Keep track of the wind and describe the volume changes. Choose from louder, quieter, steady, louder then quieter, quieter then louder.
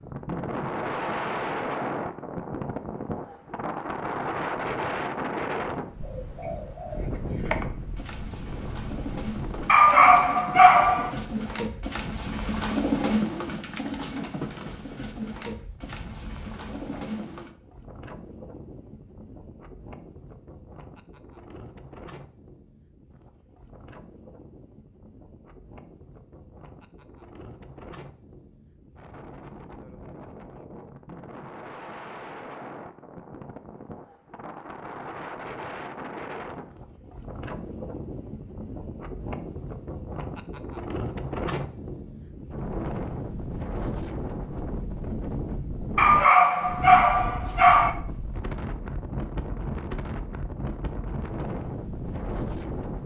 quieter then louder.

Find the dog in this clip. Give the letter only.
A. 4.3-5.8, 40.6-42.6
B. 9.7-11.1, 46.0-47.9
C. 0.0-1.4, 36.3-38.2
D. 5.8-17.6
B.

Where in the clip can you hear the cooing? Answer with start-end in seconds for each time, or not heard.
5.8-17.6.